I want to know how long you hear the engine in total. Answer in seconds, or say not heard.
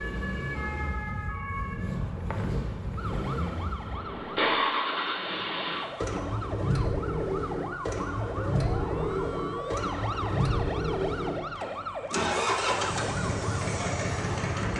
15 s.